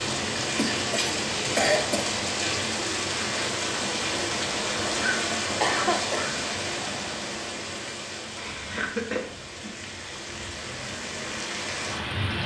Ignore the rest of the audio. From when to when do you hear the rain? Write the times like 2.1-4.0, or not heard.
0.0-12.4.